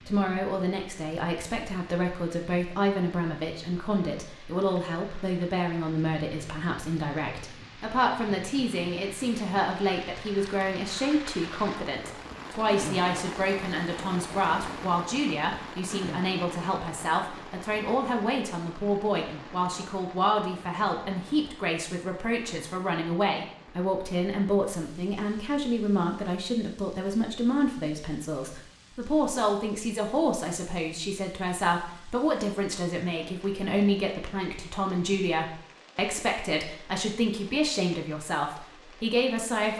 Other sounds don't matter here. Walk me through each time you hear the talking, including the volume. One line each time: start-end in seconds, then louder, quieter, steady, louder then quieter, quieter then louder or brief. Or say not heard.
0.1-39.7 steady.